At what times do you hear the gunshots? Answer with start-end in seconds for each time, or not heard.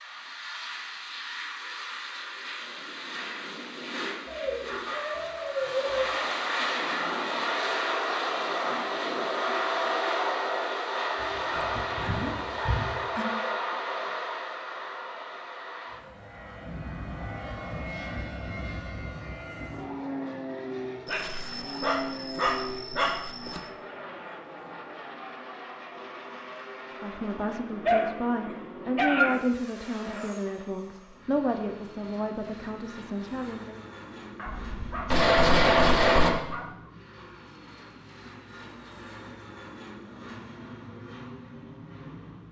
34.6-36.3.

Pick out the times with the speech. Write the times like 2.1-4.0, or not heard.
27.0-33.8.